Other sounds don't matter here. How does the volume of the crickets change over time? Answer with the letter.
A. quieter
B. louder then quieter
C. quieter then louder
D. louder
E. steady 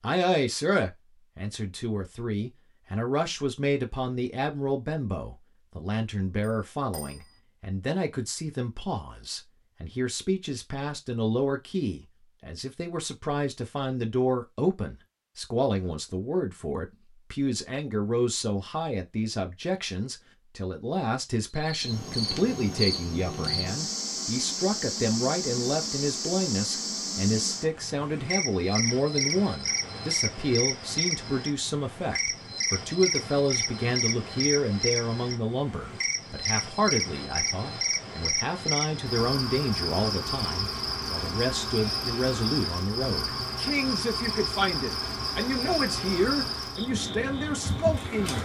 E.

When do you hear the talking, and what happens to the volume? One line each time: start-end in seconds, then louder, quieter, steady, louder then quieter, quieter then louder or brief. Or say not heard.
0.0-48.4 steady.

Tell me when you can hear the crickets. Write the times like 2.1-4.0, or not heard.
21.6-48.4.